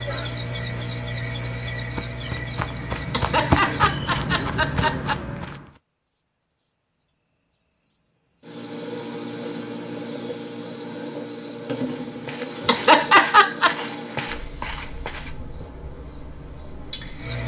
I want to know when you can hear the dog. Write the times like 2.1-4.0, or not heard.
not heard.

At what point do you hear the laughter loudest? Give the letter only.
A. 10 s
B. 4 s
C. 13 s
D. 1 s
C.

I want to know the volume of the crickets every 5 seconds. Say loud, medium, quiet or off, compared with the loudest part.
medium, medium, loud, loud.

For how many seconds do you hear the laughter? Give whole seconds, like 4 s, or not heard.
3 s.